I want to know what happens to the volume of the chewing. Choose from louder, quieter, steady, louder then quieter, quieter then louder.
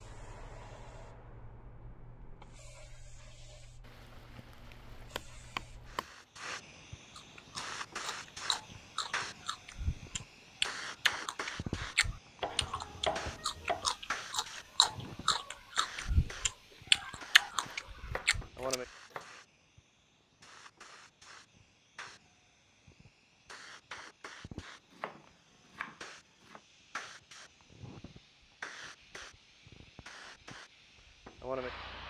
louder.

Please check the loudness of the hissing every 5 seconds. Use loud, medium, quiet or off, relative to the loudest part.
medium, loud, loud, loud, medium, medium, loud.